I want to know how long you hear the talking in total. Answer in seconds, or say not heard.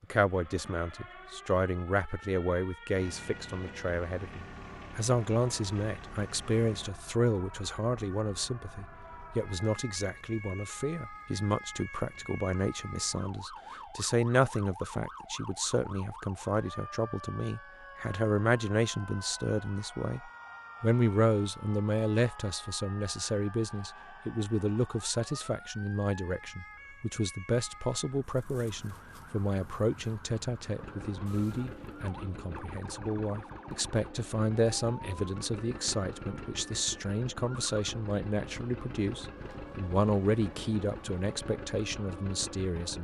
43 s.